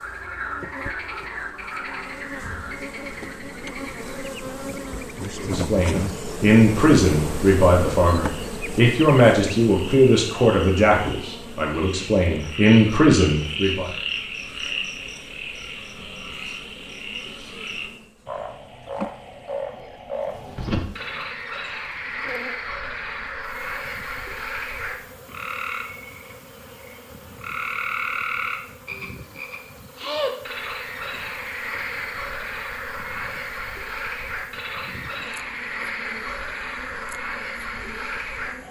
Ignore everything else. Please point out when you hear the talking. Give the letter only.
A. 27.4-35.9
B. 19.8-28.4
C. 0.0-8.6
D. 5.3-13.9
D.